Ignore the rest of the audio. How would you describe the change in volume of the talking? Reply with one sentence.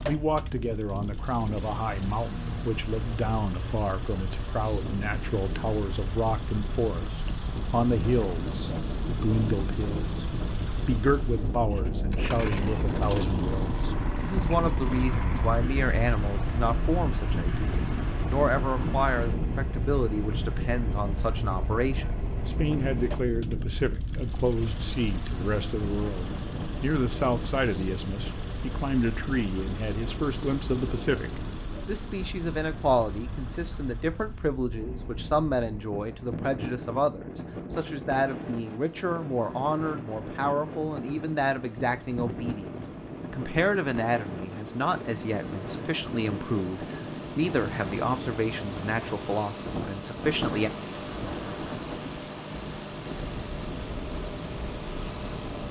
The loudness of the talking stays about the same.